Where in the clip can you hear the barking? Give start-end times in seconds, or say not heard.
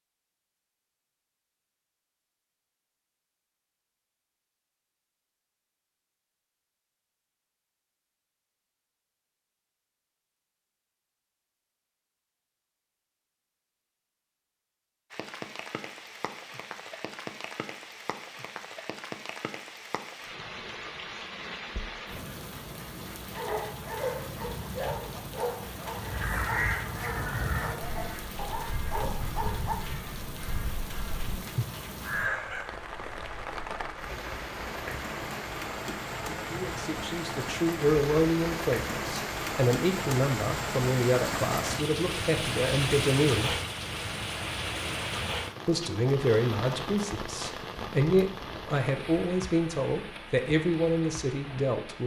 23.3-29.8.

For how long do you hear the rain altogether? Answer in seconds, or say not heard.
37 s.